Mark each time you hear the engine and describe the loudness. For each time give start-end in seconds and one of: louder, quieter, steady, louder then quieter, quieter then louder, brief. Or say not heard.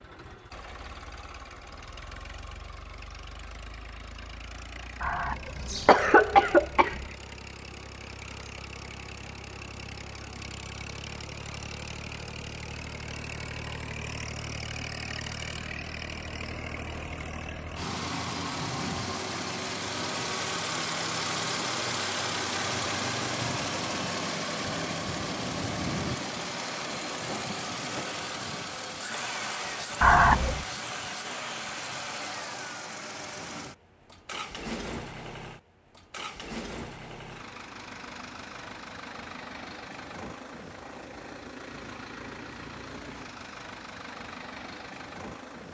0.0-45.7 louder then quieter.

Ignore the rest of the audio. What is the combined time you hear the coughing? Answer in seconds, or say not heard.
3 s.